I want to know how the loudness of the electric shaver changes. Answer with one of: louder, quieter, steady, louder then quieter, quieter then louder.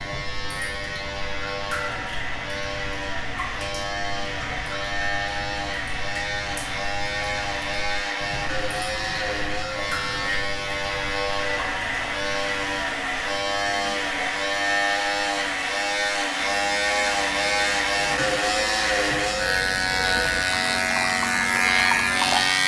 louder.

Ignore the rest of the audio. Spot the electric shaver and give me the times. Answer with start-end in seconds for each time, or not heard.
0.0-22.6.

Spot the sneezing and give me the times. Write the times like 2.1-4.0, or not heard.
not heard.